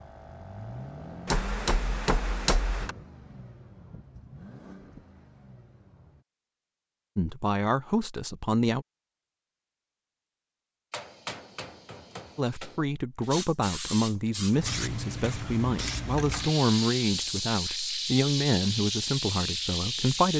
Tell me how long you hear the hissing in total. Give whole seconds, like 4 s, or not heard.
7 s.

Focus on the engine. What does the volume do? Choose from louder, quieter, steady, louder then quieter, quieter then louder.
quieter.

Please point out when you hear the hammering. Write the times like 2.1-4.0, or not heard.
1.2-3.0, 10.9-12.8.